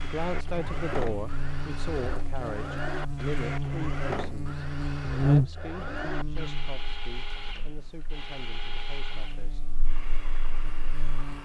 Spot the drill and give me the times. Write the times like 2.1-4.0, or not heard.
0.0-11.3.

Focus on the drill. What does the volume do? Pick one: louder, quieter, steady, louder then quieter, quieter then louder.
quieter.